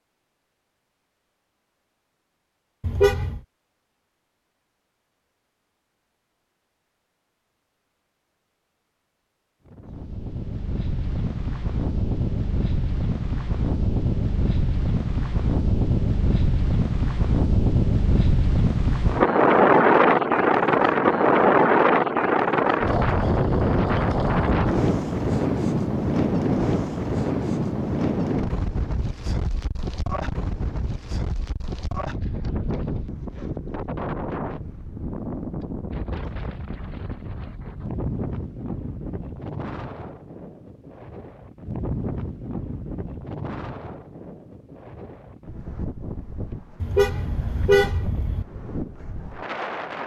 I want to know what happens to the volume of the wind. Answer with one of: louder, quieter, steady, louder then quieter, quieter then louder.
louder then quieter.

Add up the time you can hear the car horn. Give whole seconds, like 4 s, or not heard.
2 s.